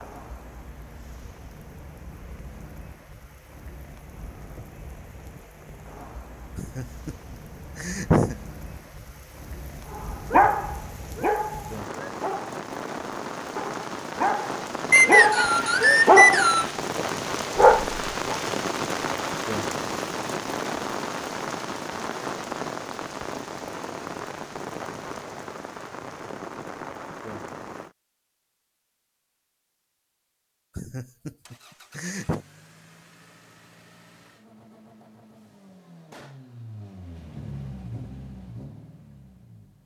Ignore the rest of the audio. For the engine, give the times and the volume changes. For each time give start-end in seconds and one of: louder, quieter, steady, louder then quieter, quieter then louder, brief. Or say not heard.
31.4-39.8 louder.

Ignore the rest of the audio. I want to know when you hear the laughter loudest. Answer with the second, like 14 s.
8 s.